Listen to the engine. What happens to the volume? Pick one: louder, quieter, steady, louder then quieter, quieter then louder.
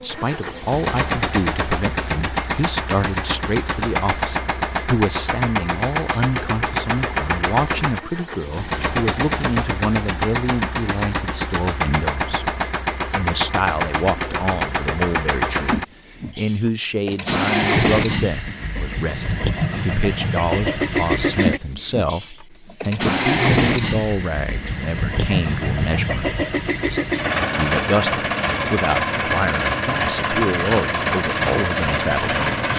steady.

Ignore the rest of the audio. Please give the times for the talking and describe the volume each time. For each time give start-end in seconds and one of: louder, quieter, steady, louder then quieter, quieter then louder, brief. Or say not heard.
0.0-12.5 steady
13.2-26.3 steady
27.6-32.7 steady.